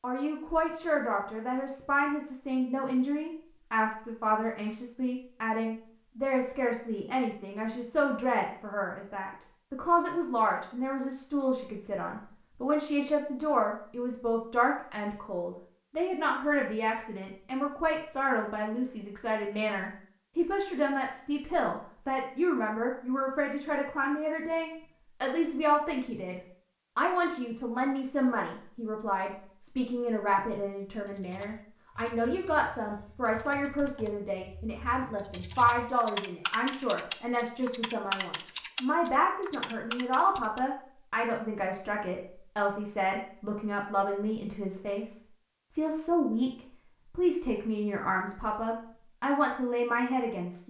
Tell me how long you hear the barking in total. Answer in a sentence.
You can't hear the barking here.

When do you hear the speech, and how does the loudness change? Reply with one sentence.
You can hear the speech from 0.0 to 50.6 s, at a steady volume.